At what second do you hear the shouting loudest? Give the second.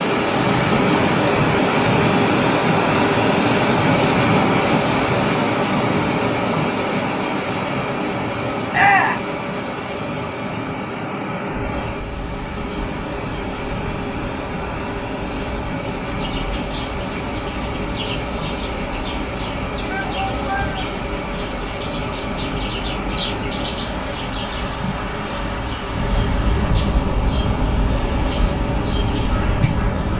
9 s.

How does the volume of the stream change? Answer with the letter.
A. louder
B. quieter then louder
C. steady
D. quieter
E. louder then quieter
D.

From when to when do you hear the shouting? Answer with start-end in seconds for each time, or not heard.
8.7-9.2, 19.9-20.9.